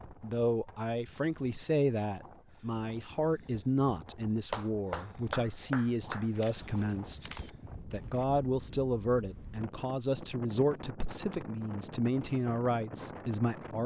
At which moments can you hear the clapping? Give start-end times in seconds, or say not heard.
4.5-6.2.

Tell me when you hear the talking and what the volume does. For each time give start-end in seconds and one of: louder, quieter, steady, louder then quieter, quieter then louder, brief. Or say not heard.
0.2-13.8 steady.